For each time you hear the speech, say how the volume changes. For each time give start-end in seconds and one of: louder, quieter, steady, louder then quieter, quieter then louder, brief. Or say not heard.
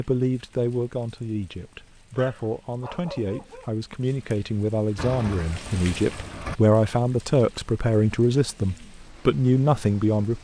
0.0-10.3 louder.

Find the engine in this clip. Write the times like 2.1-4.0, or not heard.
5.0-6.6.